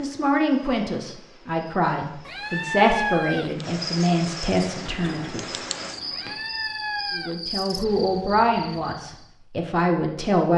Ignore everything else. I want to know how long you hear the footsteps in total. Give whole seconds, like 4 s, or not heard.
not heard.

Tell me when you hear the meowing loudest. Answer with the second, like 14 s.
3 s.